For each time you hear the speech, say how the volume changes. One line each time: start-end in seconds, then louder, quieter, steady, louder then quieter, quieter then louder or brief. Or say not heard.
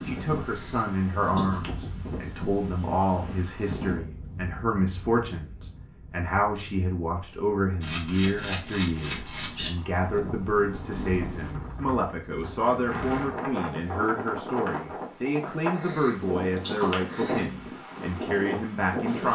0.0-19.3 steady.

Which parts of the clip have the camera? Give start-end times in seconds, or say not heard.
0.1-1.7, 7.8-9.7, 15.4-17.4.